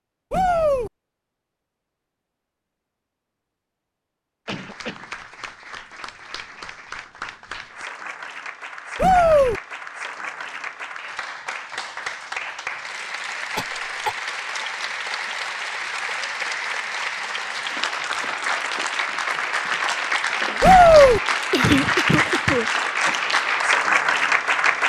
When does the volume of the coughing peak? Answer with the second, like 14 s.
22 s.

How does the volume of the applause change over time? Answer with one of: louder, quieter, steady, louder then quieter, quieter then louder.
louder.